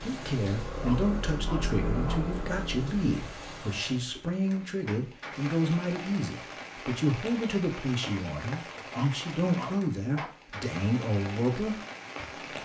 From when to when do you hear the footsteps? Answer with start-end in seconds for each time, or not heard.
not heard.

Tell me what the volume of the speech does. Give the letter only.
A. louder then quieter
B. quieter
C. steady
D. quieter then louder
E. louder
C.